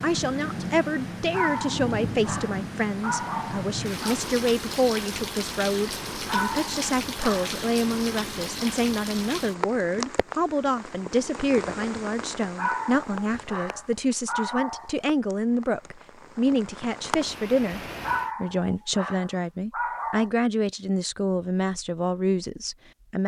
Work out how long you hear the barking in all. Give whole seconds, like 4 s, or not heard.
9 s.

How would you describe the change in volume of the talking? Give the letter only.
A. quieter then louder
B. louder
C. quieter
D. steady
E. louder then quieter
D.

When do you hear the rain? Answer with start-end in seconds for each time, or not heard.
0.0-18.3.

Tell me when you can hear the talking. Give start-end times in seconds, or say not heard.
0.0-17.8, 18.4-23.2.